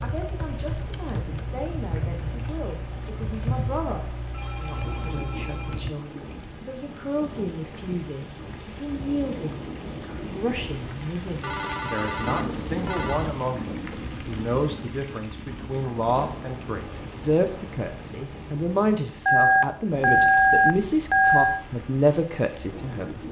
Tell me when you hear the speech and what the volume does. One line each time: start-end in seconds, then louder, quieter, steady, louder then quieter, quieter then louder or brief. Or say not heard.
0.0-23.2 louder.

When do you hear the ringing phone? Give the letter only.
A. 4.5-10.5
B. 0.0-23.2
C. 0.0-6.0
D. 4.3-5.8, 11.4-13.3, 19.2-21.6
D.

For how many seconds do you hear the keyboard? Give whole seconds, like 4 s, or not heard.
6 s.